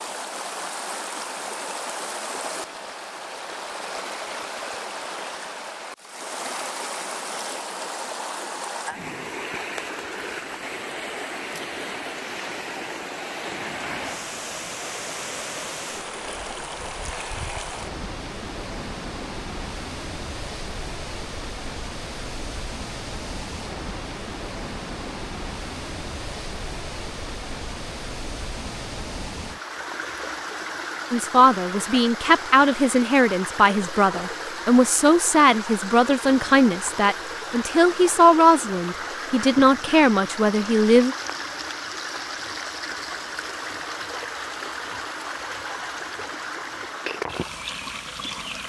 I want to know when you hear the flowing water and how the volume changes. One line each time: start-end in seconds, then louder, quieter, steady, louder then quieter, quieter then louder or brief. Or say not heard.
0.0-48.6 steady.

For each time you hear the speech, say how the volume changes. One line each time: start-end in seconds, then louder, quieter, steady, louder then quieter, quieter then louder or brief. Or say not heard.
31.1-41.1 steady.